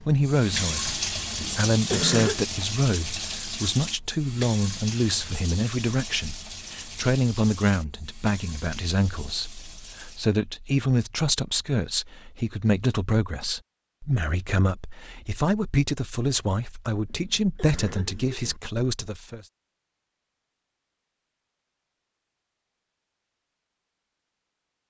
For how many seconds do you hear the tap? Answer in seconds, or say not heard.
10 s.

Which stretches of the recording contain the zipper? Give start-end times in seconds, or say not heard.
not heard.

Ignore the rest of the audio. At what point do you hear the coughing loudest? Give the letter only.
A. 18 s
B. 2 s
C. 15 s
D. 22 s
B.